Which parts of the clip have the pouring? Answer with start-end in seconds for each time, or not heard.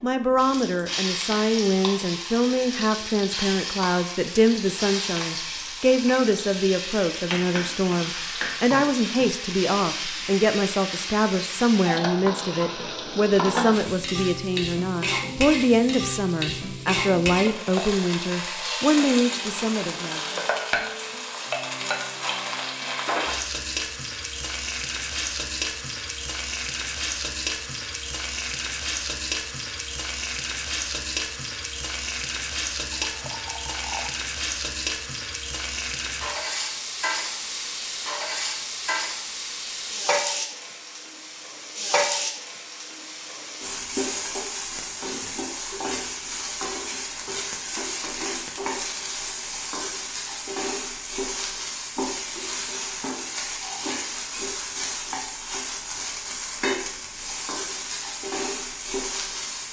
32.9-34.1.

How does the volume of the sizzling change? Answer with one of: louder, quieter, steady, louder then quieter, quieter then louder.
steady.